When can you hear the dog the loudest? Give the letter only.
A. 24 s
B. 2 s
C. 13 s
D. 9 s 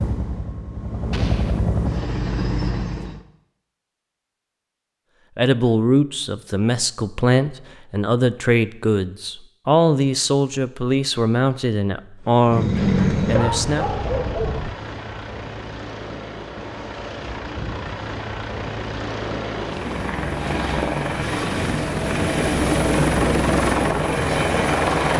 C.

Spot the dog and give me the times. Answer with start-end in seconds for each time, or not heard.
12.5-14.5.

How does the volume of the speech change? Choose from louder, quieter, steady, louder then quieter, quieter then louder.
steady.